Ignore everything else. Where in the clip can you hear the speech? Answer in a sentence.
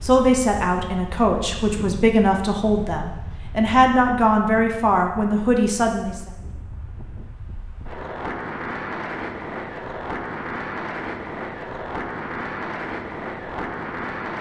The speech can be heard from 0.0 to 6.2 s.